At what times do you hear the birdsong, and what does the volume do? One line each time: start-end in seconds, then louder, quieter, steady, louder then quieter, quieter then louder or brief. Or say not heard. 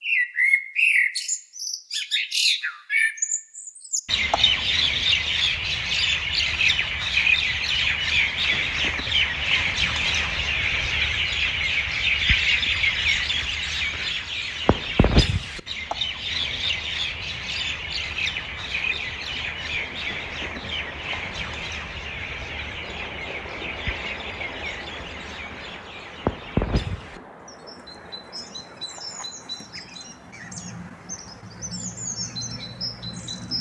0.0-33.5 quieter.